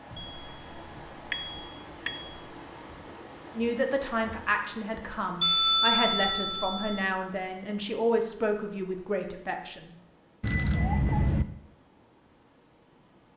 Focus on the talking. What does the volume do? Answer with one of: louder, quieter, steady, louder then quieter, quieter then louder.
steady.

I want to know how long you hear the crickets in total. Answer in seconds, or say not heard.
not heard.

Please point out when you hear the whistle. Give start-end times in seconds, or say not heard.
not heard.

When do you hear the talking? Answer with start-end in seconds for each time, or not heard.
3.5-9.9.